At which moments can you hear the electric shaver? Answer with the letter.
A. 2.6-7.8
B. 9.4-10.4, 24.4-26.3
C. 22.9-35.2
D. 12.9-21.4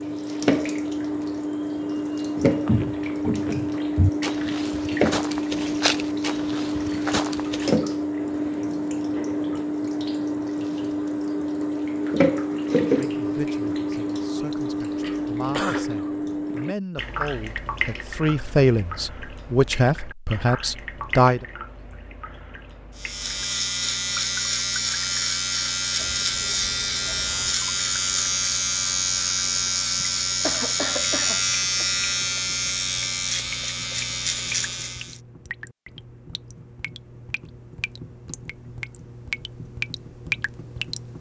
C.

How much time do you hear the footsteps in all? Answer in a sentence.
You can hear the footsteps for 5 seconds altogether.